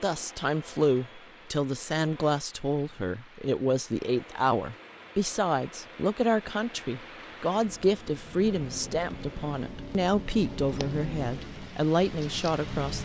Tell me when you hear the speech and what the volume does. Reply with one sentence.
You can hear the speech from 0.0 to 13.0 s, at a steady volume.